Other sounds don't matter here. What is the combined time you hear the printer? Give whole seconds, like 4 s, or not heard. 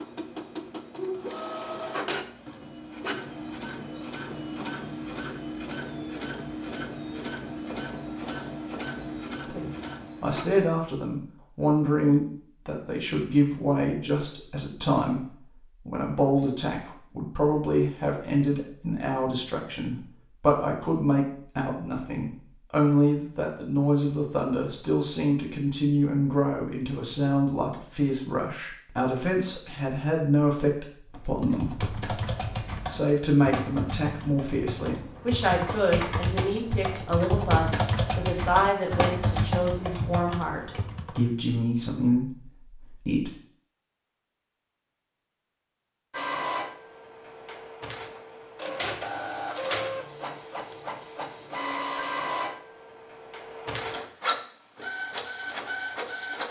21 s.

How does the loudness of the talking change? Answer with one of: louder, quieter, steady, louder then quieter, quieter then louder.
steady.